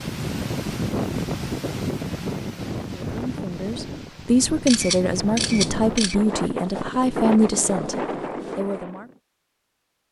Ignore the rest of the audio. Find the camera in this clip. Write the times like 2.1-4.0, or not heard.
4.7-6.2.